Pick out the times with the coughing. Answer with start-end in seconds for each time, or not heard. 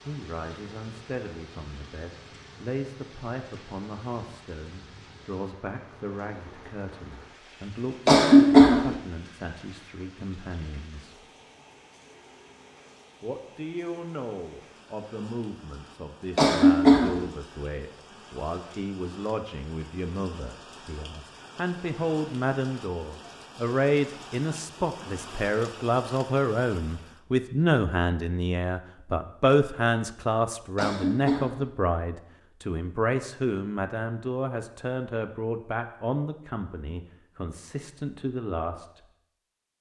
8.1-8.9, 16.4-17.2, 30.8-31.6.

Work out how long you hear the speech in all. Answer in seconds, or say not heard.
37 s.